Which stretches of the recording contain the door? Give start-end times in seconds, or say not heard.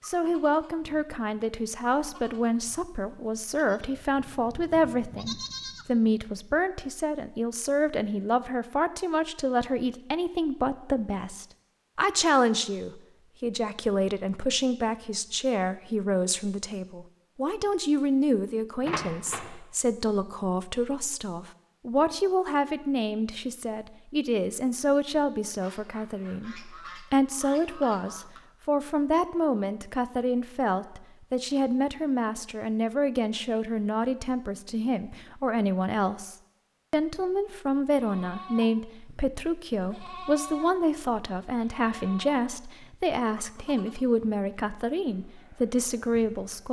18.8-19.5.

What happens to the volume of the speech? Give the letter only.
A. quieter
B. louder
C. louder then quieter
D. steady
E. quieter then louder
D.